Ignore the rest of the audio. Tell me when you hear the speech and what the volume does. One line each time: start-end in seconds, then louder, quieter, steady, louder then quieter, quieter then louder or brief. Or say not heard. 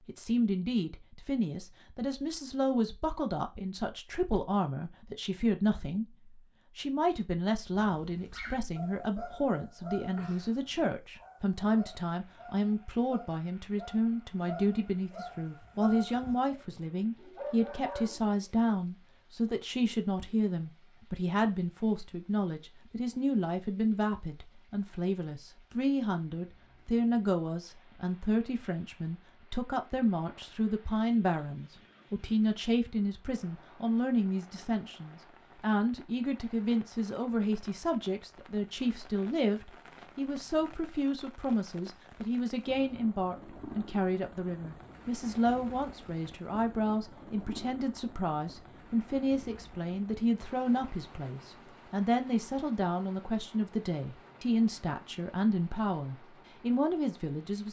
0.1-57.6 steady.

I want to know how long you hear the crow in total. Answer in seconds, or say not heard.
not heard.